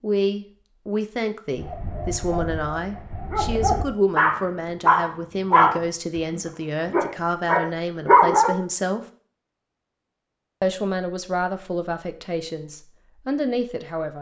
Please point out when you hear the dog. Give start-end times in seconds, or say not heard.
1.6-8.6.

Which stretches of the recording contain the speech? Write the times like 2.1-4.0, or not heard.
0.0-9.0, 10.6-14.1.